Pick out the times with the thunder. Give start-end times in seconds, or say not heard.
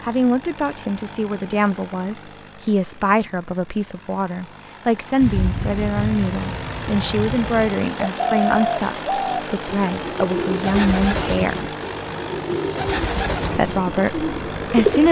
5.2-7.8.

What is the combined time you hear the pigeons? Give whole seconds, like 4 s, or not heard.
7 s.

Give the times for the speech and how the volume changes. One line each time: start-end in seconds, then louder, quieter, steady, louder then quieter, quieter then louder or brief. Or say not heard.
0.0-11.7 steady
13.5-15.0 brief.